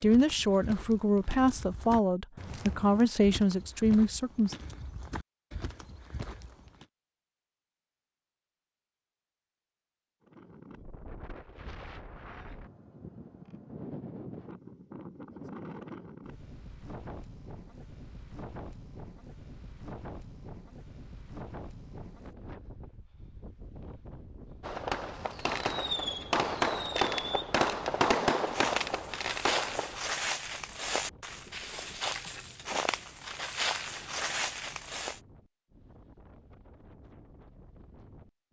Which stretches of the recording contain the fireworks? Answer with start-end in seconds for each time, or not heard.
24.6-30.0.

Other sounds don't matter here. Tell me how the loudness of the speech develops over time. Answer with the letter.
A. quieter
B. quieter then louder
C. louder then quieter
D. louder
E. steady
E.